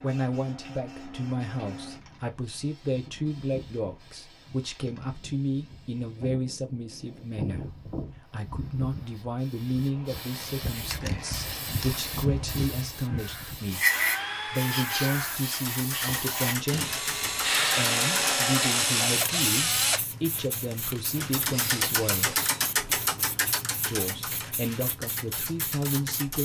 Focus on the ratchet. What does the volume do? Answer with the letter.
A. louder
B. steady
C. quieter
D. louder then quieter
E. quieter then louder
D.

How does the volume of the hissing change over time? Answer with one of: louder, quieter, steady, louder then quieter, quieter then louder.
louder then quieter.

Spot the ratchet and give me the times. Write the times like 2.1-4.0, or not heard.
15.4-18.6, 21.1-26.4.